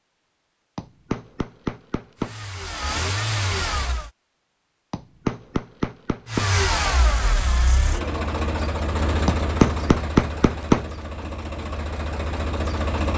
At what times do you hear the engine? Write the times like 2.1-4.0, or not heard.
2.1-4.1, 6.2-13.1.